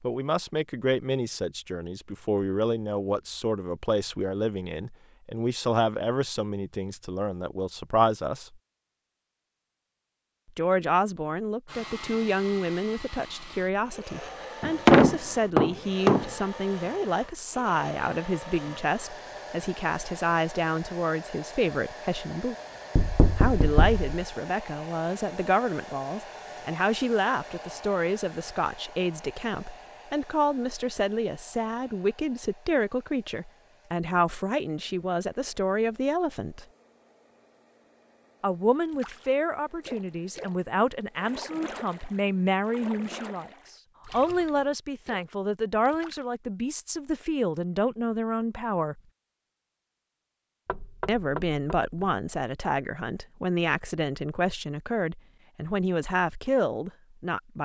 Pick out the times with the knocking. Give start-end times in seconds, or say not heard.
14.6-16.3, 22.9-24.1, 50.6-52.2.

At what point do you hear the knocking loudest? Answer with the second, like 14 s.
15 s.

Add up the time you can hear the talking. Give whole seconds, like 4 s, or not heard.
50 s.